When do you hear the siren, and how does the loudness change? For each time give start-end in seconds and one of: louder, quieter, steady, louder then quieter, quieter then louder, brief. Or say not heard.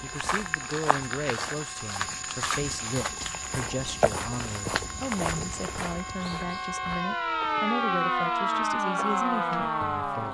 0.0-10.2 louder.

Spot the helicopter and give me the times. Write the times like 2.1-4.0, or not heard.
not heard.